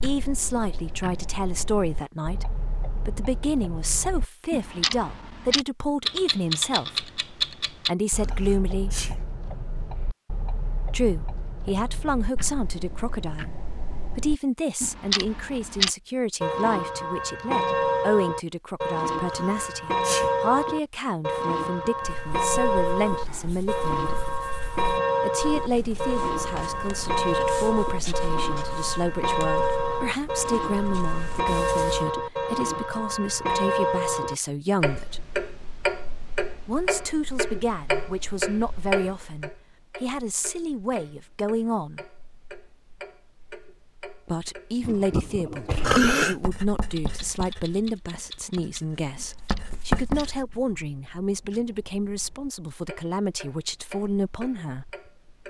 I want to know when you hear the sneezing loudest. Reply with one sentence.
The volume of the sneezing peaks at 46 seconds.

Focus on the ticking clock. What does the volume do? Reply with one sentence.
The volume of the ticking clock goes up, then down.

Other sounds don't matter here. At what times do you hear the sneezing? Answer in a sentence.
You can hear the sneezing from 8.2 to 9.2 s, from 19.2 to 20.3 s and from 45.8 to 46.4 s.